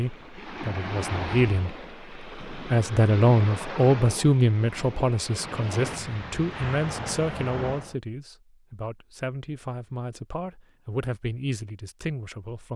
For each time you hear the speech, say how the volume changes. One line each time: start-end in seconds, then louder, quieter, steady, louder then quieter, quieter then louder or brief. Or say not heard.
0.0-1.8 brief
2.5-12.7 quieter.